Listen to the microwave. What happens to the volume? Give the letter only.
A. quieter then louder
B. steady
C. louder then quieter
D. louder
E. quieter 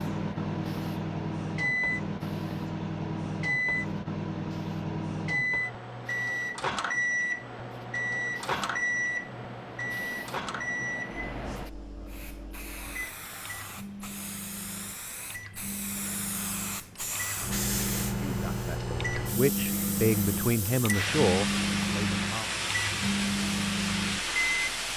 A.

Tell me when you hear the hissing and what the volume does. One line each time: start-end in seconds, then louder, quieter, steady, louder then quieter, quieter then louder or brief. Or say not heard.
0.0-24.9 louder.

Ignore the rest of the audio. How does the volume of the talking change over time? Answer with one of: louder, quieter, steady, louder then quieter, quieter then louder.
louder then quieter.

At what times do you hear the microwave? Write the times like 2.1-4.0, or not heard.
0.0-24.9.